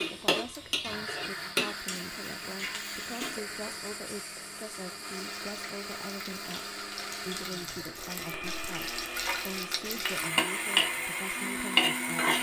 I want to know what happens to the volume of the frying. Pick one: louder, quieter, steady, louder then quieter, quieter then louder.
quieter then louder.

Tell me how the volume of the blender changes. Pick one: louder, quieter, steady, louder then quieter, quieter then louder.
steady.